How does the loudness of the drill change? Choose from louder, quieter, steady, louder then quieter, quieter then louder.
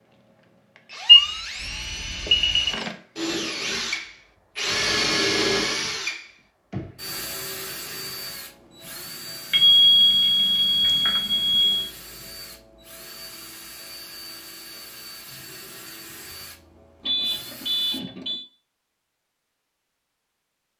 louder then quieter.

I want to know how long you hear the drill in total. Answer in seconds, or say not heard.
18 s.